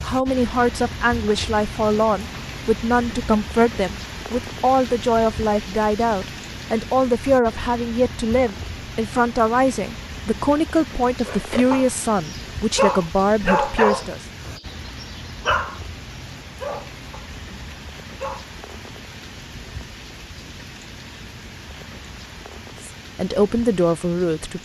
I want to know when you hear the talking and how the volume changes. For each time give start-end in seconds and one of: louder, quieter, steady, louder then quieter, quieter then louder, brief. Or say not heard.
0.0-14.2 steady
22.8-24.6 brief.